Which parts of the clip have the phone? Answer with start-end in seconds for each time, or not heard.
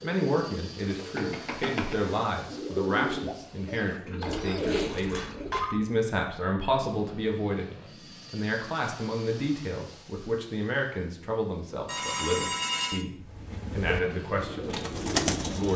4.2-5.8, 11.8-13.1.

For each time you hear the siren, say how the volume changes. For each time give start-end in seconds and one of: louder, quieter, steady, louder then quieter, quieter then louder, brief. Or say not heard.
not heard.